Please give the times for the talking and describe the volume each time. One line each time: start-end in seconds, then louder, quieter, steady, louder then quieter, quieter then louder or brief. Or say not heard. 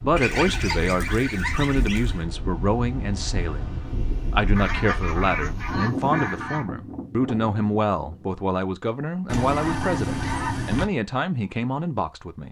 0.0-12.4 steady.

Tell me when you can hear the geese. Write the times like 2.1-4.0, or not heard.
0.1-2.2, 4.5-6.7, 9.2-10.8.